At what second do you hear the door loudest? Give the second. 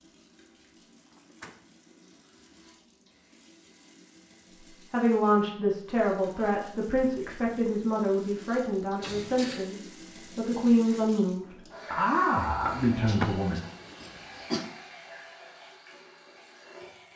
13 s.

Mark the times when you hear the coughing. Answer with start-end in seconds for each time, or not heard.
13.1-14.7.